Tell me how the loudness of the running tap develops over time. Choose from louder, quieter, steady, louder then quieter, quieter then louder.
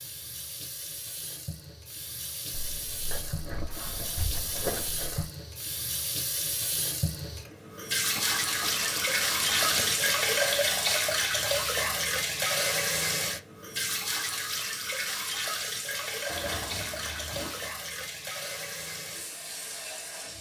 louder then quieter.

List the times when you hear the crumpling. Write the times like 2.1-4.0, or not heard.
2.5-5.3, 8.2-10.2, 16.2-17.7.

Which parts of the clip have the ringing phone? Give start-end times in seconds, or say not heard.
not heard.